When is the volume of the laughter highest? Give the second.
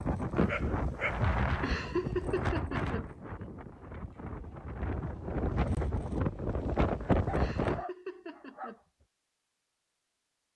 2 s.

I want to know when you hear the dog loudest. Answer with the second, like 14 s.
1 s.